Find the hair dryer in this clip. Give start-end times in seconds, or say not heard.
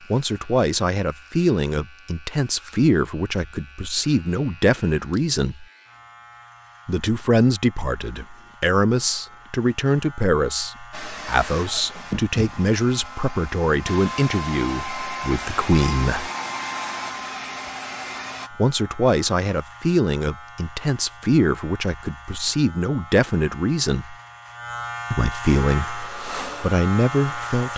10.9-18.5, 25.7-27.7.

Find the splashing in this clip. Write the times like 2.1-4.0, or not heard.
not heard.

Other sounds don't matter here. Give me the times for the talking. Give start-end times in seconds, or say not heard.
0.1-5.7, 6.8-16.3, 18.5-24.1, 25.1-27.7.